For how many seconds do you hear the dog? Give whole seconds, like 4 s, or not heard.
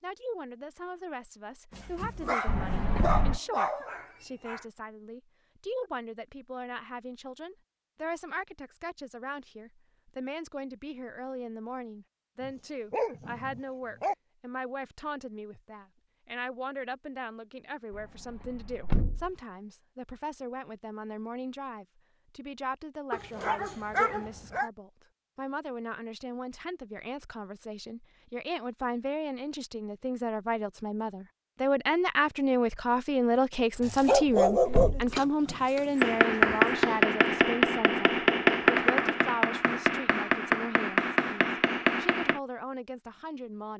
9 s.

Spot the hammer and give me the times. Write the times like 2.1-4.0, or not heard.
36.0-42.4.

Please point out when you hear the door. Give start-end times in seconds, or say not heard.
2.5-3.4, 17.9-19.3, 33.8-35.1.